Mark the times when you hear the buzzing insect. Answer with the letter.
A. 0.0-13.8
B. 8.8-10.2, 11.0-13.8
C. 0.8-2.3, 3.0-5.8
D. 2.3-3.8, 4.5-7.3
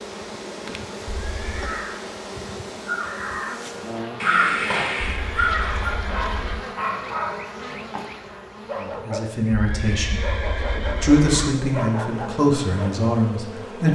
A.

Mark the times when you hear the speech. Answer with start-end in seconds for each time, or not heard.
8.8-10.2, 11.0-13.8.